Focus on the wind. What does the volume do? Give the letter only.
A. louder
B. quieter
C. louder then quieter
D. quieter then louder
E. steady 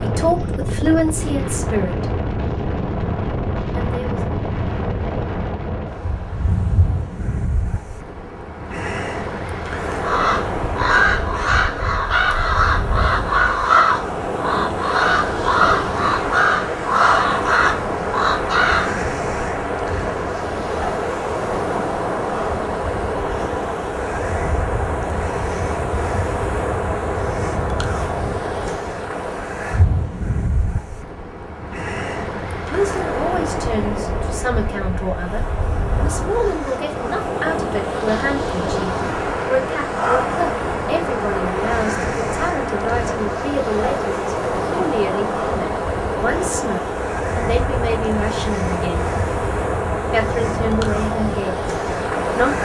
E.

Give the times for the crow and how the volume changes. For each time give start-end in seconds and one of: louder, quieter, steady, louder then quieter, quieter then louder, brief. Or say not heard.
10.0-18.9 steady.